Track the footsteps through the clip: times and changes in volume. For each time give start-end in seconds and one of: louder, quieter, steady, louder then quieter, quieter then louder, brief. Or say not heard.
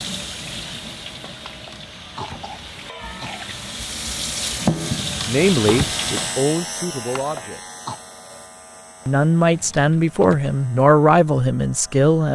not heard.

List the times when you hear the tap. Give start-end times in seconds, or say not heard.
0.0-6.5.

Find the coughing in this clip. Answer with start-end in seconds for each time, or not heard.
1.4-3.5, 7.2-8.0.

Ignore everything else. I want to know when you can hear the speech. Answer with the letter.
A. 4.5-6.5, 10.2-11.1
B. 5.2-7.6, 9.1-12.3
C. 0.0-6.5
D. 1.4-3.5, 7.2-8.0
B.